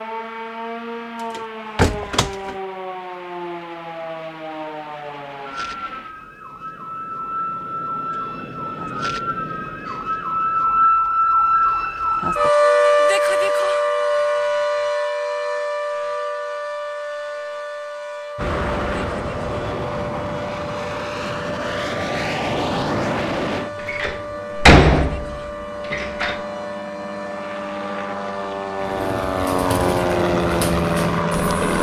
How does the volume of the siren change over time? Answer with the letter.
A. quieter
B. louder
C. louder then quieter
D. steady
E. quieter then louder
C.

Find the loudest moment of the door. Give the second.
25 s.